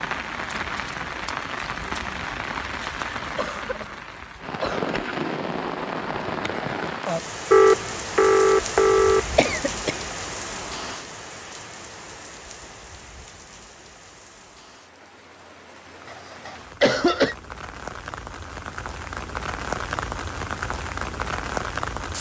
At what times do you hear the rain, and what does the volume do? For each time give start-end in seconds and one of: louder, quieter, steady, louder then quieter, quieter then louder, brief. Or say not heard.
0.0-22.1 quieter then louder.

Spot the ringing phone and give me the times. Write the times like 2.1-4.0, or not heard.
7.5-9.2.